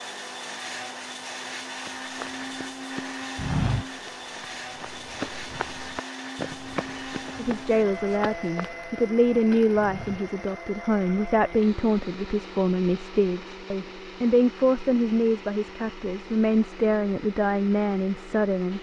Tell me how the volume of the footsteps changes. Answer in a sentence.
The loudness of the footsteps goes down.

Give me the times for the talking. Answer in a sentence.
The talking can be heard from 7.3 to 18.7 s.